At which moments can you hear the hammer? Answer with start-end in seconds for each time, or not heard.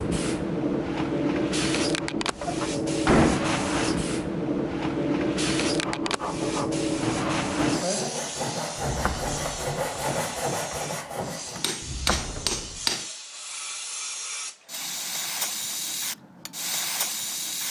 11.6-13.1.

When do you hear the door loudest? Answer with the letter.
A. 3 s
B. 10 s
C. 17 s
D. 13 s
A.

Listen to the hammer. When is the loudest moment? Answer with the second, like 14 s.
13 s.